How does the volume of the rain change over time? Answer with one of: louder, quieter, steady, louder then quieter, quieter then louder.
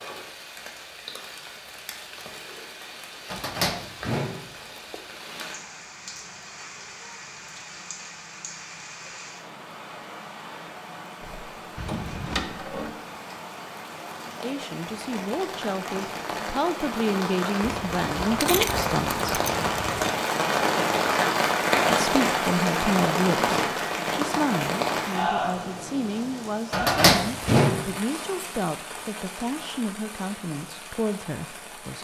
louder then quieter.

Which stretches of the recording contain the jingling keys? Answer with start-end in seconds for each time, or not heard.
11.8-12.4, 17.6-20.1.